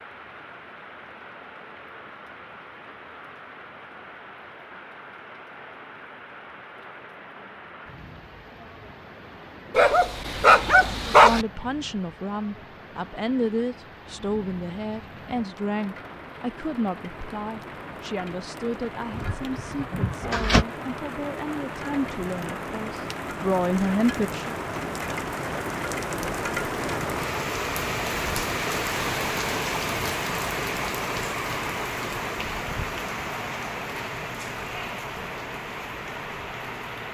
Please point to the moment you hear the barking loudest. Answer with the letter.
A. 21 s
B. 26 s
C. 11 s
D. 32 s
C.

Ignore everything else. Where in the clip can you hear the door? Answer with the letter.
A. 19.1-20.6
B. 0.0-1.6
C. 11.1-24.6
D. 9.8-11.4
A.